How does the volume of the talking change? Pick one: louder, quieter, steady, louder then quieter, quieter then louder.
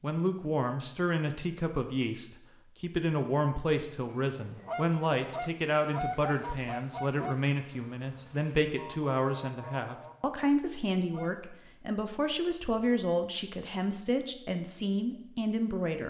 steady.